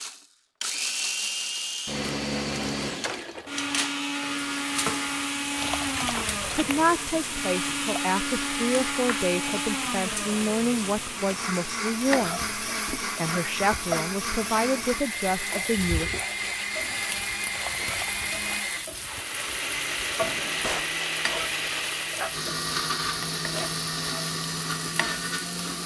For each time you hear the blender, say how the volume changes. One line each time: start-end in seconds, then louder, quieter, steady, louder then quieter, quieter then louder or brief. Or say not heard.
0.0-25.8 steady.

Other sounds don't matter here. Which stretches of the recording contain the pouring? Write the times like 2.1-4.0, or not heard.
5.5-6.9, 17.5-18.6.